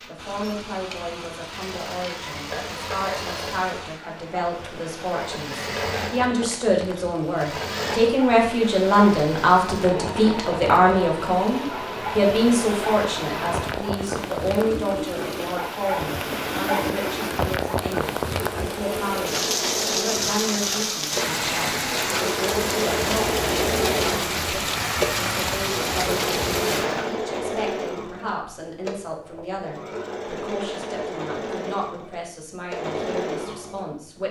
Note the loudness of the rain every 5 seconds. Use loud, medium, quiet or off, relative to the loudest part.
quiet, medium, medium, loud, loud, loud, off.